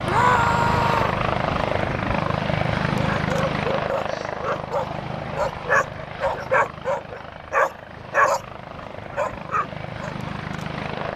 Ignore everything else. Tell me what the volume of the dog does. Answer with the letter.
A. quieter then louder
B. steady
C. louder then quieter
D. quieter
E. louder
C.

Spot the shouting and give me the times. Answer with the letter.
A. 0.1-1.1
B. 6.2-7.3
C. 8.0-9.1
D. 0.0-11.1
A.